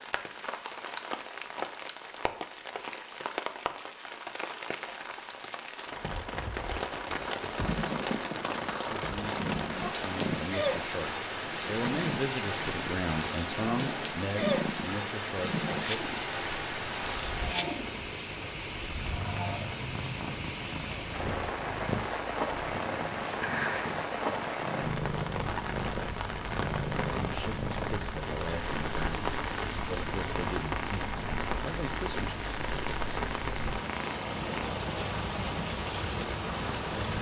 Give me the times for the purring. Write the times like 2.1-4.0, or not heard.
7.5-37.1.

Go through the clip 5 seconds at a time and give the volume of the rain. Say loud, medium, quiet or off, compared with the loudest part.
medium, loud, loud, loud, loud, loud, loud, loud.